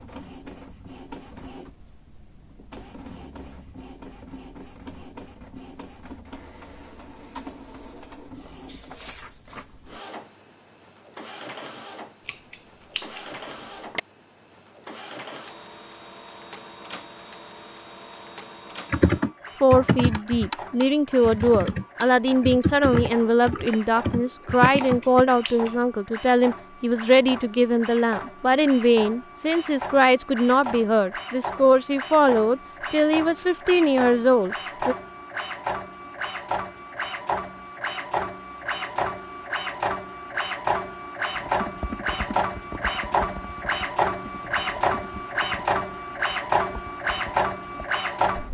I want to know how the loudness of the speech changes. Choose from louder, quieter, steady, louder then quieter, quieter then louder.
steady.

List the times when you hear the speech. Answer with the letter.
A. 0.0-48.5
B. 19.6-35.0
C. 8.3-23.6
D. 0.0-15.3
B.